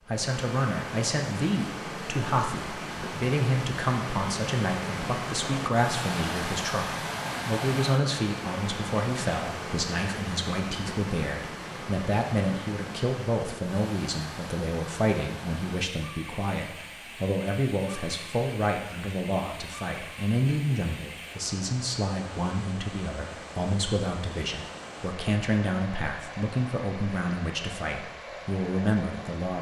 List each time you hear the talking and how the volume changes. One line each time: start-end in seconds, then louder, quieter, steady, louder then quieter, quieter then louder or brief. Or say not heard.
0.1-29.5 steady.